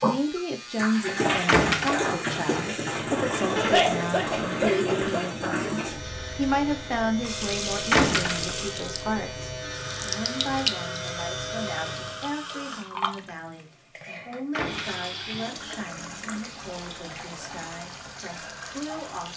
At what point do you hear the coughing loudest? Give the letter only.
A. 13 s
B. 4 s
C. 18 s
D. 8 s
B.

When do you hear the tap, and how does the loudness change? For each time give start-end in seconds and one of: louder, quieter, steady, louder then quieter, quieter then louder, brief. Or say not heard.
0.0-19.3 quieter.